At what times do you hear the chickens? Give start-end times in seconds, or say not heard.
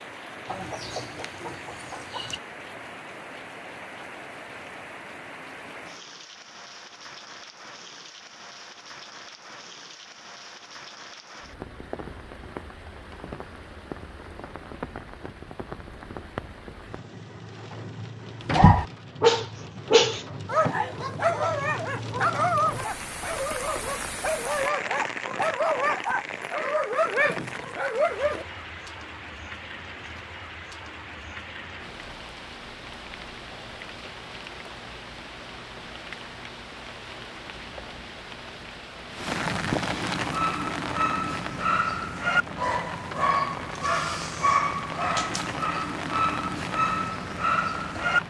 0.5-2.4.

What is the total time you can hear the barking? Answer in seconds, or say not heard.
18 s.